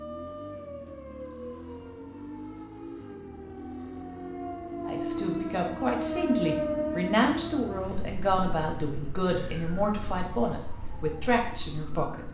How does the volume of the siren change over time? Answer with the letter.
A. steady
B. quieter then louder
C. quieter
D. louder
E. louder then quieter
E.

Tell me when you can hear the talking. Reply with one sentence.
You can hear the talking from 4.8 to 12.2 s.